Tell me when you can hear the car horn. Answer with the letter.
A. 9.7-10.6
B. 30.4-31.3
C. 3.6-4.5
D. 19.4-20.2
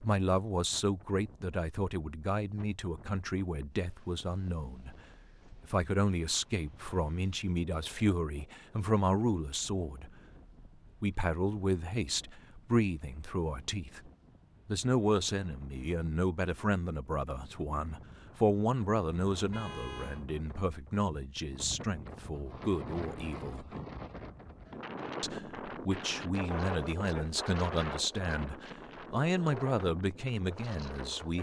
D.